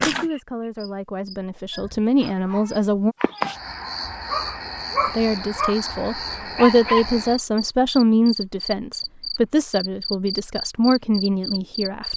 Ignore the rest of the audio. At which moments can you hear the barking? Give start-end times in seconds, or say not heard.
1.7-7.0.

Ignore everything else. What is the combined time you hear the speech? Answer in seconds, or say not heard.
10 s.